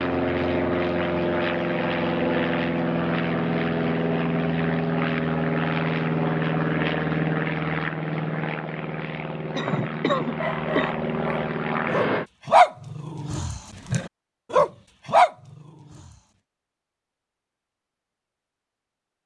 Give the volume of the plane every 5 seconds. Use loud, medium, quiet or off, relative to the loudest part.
loud, loud, loud, off.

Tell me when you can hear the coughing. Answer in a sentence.
The coughing can be heard from 9.6 to 10.9 s.